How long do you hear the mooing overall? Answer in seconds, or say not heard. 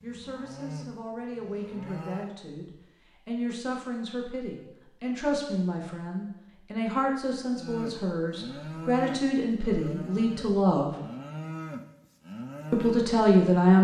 8 s.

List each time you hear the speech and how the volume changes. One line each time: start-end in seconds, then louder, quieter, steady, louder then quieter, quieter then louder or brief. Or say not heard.
0.0-10.9 louder
12.7-13.7 brief.